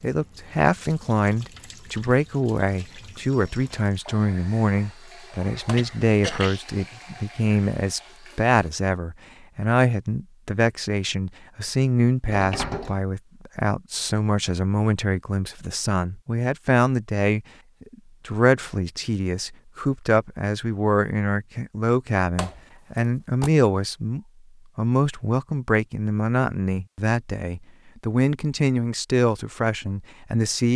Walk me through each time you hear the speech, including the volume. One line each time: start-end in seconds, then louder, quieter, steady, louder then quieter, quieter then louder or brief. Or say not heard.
0.0-30.7 steady.